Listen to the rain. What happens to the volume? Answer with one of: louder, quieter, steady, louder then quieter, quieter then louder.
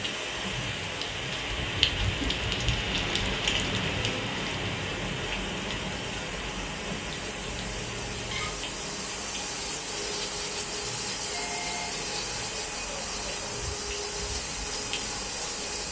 quieter.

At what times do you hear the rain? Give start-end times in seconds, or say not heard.
0.0-15.8.